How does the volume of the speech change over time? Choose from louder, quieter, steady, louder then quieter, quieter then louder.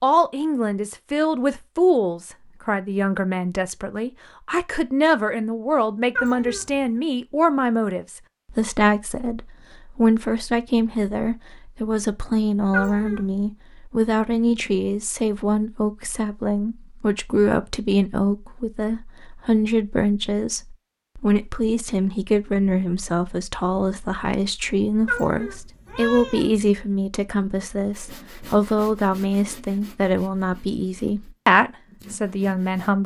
steady.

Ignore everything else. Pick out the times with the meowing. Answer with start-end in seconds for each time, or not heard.
6.2-6.8, 12.7-13.3, 25.1-26.7.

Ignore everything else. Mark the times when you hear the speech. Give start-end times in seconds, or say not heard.
0.0-33.0.